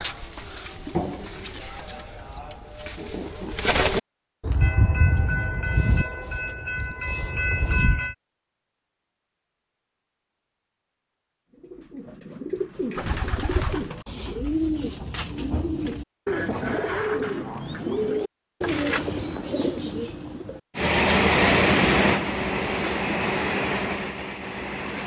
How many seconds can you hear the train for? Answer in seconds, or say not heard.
8 s.